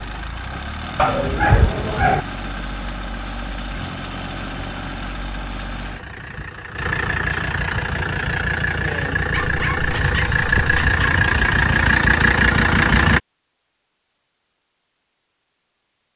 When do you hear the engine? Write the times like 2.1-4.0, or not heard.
0.0-13.2.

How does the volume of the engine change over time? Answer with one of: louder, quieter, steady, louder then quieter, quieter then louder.
louder.